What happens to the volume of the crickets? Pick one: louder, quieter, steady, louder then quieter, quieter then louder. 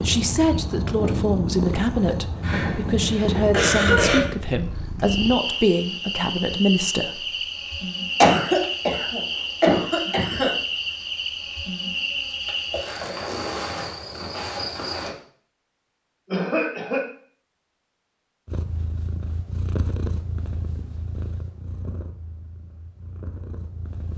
steady.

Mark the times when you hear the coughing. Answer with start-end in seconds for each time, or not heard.
2.4-4.2, 8.2-10.5, 16.2-17.0.